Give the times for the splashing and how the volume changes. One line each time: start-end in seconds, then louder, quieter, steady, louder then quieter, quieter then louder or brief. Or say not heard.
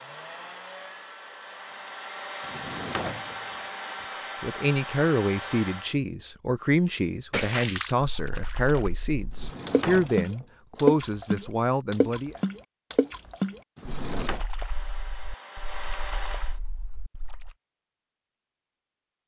7.3-17.6 louder then quieter.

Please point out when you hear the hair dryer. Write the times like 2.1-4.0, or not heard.
0.0-6.0, 14.4-16.6.